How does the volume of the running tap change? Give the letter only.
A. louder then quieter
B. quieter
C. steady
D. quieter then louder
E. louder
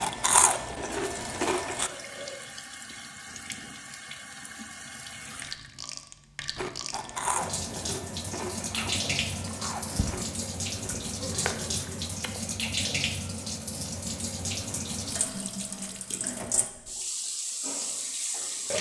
E.